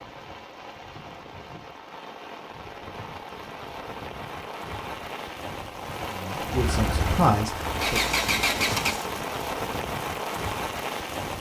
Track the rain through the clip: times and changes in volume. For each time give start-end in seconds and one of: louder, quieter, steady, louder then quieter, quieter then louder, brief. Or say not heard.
0.0-11.3 louder.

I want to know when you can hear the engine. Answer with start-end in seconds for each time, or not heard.
6.5-9.1.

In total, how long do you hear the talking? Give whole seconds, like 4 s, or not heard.
2 s.